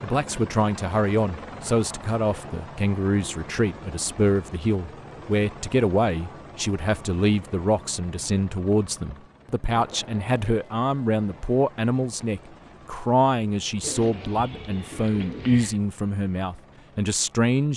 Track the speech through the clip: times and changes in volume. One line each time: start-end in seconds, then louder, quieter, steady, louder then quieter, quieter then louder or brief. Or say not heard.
0.0-17.7 steady.